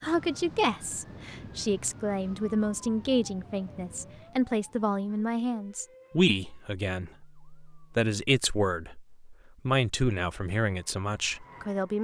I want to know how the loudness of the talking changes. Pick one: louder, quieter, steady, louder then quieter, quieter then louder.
steady.